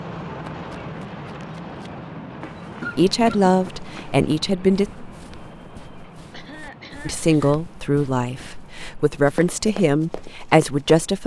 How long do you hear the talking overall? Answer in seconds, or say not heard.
6 s.